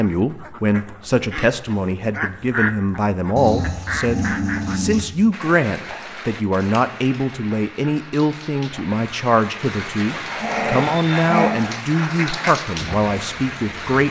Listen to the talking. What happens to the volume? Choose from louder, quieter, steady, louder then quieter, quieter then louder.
steady.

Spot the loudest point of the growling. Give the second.
11 s.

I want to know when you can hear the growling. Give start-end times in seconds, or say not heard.
3.4-5.0, 10.2-11.6.